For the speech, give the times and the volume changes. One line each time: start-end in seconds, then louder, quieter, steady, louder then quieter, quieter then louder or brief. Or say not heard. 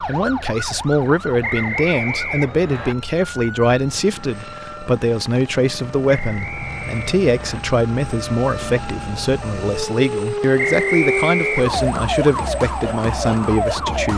0.0-14.1 steady.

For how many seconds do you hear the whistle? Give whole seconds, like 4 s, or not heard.
4 s.